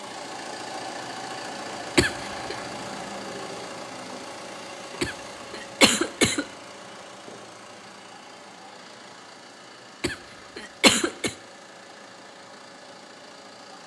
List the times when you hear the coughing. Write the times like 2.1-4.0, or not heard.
1.9-2.5, 5.0-6.5, 10.0-11.3.